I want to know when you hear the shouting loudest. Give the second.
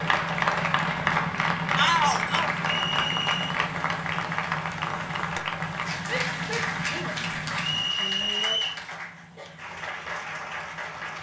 2 s.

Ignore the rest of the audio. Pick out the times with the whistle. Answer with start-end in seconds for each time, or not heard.
2.6-3.6, 7.6-8.8.